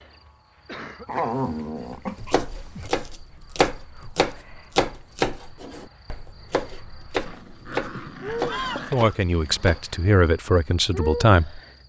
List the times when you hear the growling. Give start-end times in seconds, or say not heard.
1.1-2.9, 7.2-8.9.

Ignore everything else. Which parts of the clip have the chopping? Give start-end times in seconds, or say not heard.
2.1-9.8.